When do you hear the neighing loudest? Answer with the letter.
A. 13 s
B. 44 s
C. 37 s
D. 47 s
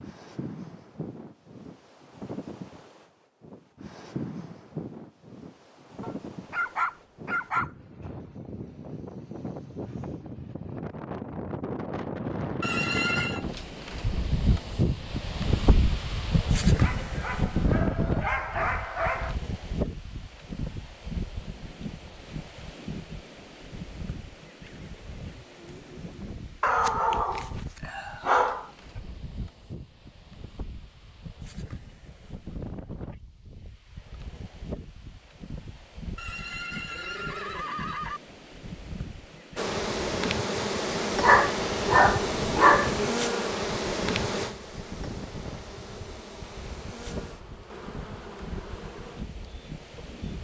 A.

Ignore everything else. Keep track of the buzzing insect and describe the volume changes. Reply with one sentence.
The volume of the buzzing insect goes down.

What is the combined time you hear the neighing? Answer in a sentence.
You can hear the neighing for 3 seconds altogether.